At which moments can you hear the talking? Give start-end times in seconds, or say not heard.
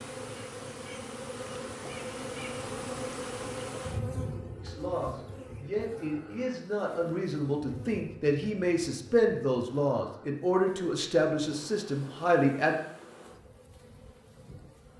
4.5-12.8.